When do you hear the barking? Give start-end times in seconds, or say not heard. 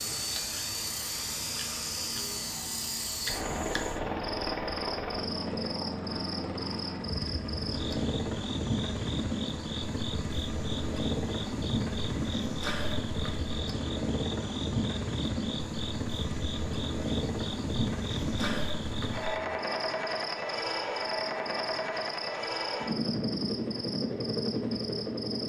not heard.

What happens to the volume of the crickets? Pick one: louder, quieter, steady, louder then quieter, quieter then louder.
steady.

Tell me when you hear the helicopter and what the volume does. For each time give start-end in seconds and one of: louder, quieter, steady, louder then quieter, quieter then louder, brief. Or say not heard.
0.0-25.4 steady.